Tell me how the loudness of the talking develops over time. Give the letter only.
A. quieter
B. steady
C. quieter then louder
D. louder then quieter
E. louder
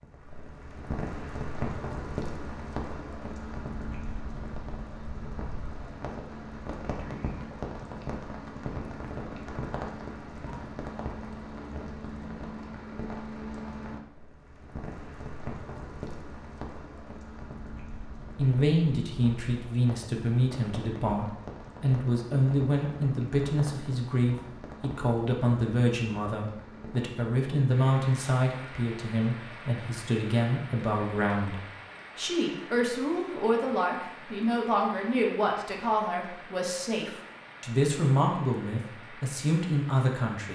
B.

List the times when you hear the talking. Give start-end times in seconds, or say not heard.
18.4-40.5.